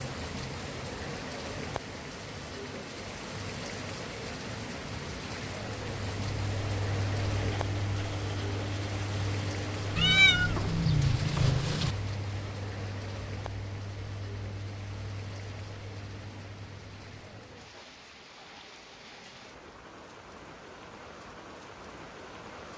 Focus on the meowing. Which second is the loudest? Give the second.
10 s.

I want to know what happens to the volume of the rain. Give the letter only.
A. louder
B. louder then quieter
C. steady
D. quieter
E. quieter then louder
D.